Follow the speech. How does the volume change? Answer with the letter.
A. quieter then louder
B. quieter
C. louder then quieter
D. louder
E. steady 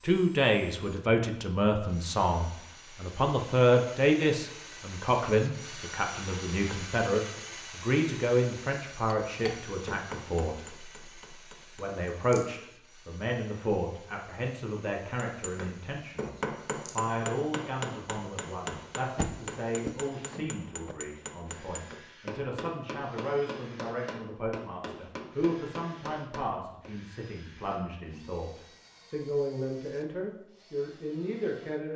B.